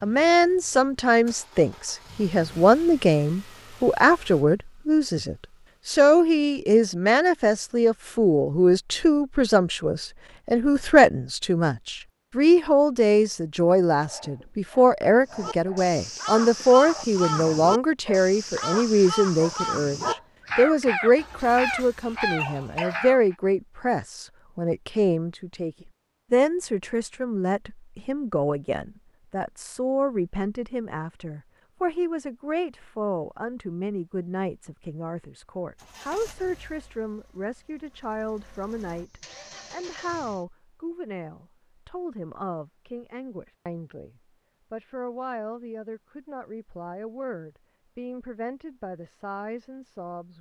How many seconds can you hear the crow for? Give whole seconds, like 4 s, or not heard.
8 s.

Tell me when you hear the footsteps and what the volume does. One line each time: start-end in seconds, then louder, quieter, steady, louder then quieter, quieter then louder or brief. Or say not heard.
not heard.